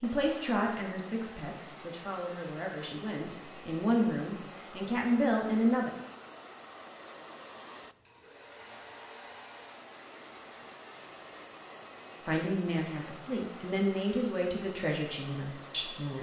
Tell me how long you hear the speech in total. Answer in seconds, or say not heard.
10 s.